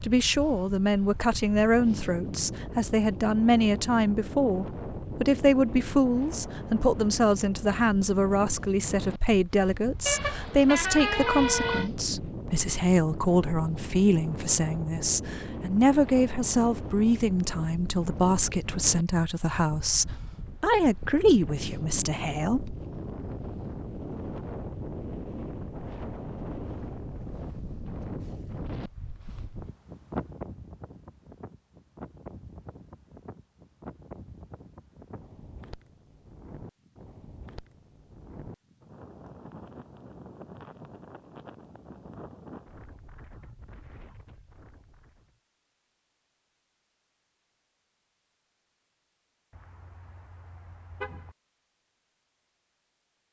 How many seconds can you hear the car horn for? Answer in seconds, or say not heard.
4 s.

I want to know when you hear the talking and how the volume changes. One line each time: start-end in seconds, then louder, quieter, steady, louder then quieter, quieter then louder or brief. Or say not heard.
0.0-22.8 steady.